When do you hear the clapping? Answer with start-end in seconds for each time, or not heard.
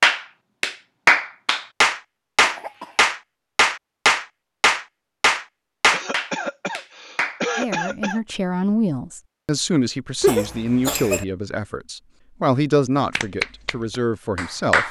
0.0-7.4, 13.1-14.8.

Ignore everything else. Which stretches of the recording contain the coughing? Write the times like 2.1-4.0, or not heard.
2.4-3.1, 5.9-8.2, 10.2-11.2.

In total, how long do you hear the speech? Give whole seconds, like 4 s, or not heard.
7 s.